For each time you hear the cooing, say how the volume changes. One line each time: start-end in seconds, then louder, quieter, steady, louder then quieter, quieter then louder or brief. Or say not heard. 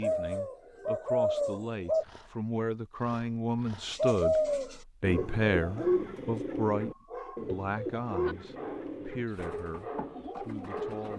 0.0-2.0 brief
3.9-11.1 quieter.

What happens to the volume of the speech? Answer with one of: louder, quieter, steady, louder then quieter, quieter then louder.
louder then quieter.